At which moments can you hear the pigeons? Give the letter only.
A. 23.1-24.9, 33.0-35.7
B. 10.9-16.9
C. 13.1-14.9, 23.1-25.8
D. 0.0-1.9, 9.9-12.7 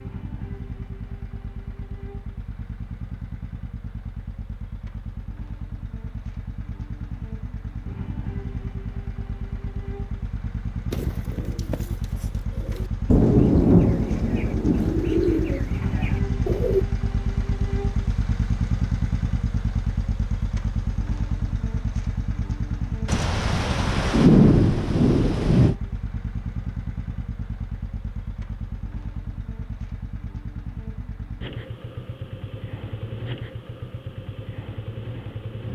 B.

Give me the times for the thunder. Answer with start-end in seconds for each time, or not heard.
13.1-14.9, 23.1-25.8.